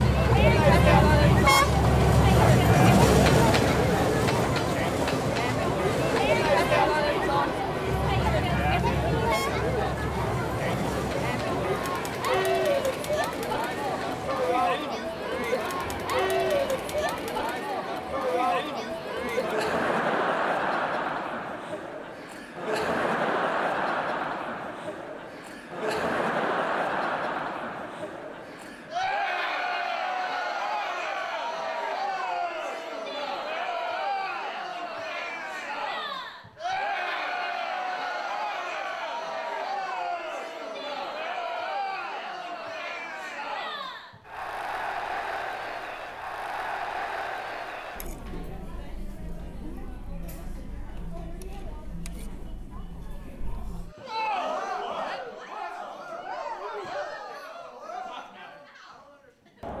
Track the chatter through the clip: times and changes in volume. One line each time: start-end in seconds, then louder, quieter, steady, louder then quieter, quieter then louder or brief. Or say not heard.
0.0-59.7 quieter.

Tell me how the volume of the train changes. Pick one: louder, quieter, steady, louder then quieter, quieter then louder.
quieter.